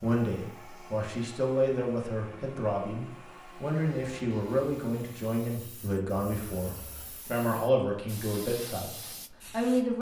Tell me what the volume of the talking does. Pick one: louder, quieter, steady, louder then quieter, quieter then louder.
steady.